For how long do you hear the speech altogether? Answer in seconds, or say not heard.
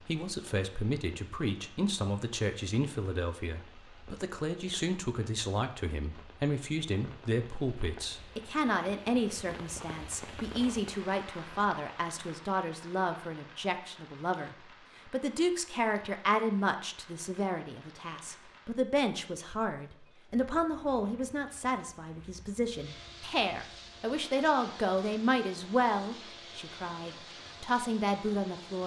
29 s.